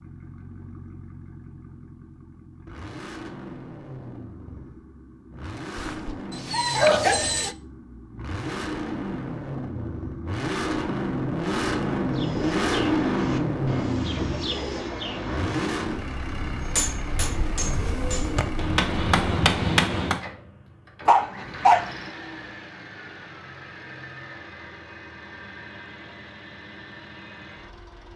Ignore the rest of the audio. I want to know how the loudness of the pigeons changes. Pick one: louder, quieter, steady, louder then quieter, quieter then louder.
quieter then louder.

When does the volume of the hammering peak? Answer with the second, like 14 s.
20 s.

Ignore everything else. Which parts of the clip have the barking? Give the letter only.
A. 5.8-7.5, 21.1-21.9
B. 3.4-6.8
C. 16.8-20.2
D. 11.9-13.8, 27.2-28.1
A.